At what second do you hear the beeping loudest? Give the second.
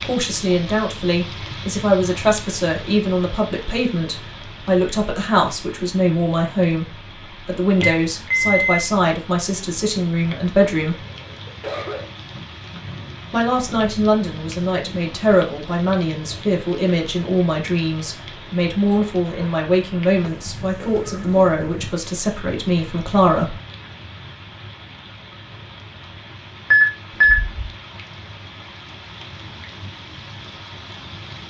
27 s.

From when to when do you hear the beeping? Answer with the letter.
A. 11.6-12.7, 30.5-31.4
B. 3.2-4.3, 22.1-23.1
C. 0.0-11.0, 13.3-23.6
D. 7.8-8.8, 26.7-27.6
D.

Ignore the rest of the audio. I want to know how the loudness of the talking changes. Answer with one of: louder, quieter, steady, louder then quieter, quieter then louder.
steady.